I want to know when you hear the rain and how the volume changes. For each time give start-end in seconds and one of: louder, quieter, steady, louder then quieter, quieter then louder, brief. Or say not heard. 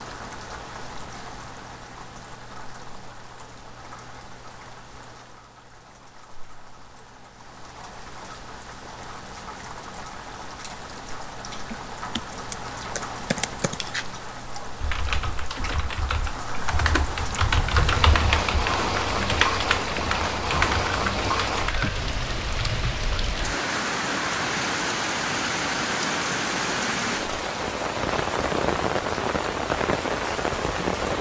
0.0-31.1 louder.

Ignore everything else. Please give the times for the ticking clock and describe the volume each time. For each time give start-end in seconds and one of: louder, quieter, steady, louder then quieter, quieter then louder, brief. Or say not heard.
not heard.